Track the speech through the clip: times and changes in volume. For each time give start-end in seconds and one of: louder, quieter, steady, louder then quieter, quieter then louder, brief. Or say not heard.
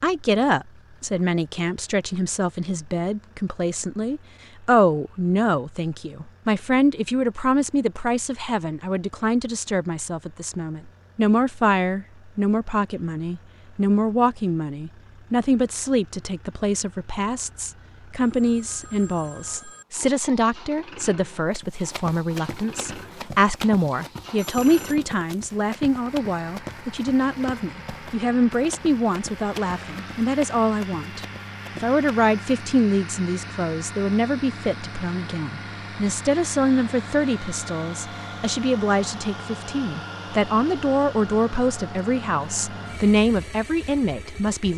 0.0-44.7 steady.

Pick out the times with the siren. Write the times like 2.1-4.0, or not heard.
not heard.